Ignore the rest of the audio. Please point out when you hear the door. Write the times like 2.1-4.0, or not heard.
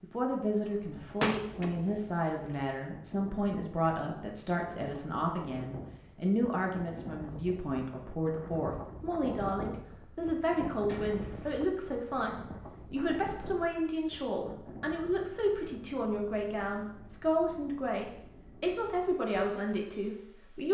1.0-2.7, 10.8-11.7.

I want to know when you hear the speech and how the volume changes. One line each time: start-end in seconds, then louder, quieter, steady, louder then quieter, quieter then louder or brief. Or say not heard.
0.0-20.6 steady.